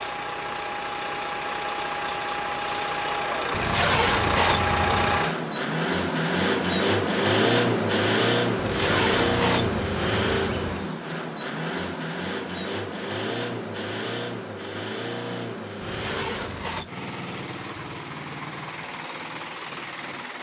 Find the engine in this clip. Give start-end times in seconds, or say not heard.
0.0-20.3.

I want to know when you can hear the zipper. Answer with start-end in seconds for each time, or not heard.
3.5-5.2, 8.6-10.9, 15.8-16.9.